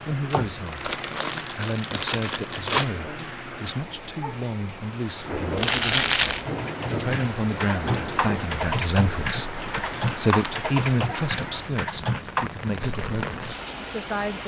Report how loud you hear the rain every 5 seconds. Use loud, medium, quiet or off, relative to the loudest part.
medium, loud, loud.